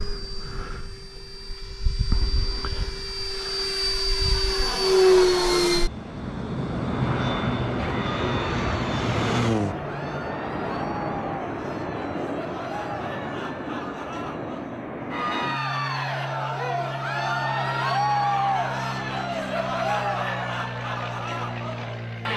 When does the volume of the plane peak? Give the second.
5 s.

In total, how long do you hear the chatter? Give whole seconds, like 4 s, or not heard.
15 s.